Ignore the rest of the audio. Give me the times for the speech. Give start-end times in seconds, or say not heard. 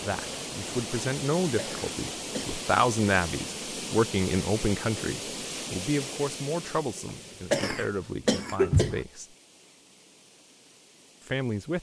0.0-9.3, 11.2-11.7.